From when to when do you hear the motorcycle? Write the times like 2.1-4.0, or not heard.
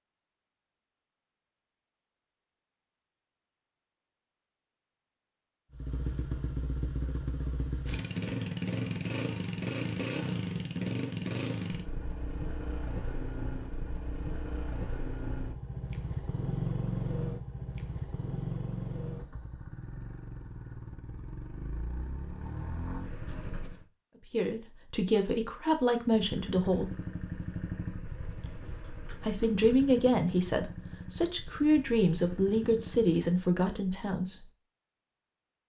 5.7-23.9, 26.1-33.2.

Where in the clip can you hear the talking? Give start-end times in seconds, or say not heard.
24.3-26.9, 29.2-34.5.